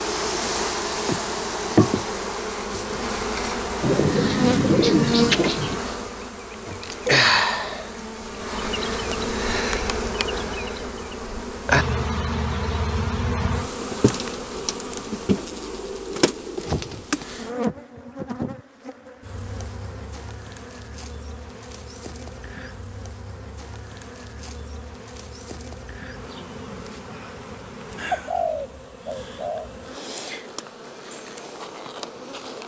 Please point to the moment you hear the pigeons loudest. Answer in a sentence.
The loudest moment of the pigeons is at 5 seconds.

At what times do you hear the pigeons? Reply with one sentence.
The pigeons can be heard from 3.8 to 5.8 s, from 14.6 to 17.1 s and from 28.1 to 29.7 s.